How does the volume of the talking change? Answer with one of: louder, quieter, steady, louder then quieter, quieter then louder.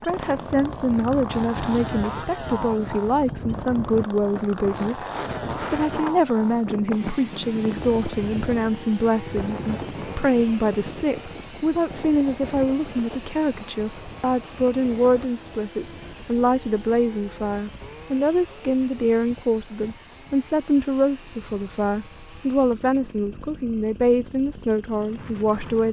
steady.